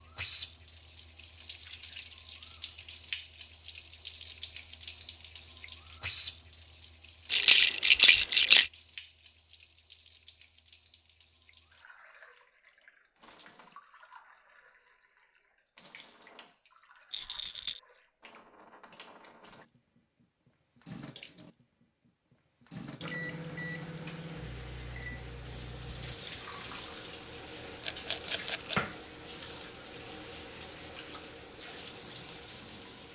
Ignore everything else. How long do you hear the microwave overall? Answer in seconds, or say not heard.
3 s.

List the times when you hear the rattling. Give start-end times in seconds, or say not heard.
7.3-8.7, 17.1-17.8, 27.8-28.8.